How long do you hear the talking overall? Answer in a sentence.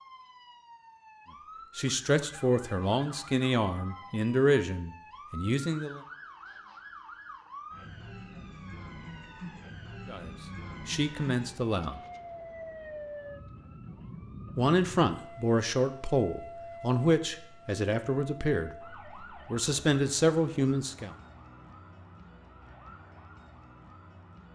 The talking can be heard for 13 seconds in total.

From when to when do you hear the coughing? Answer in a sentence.
The coughing can't be heard in this clip.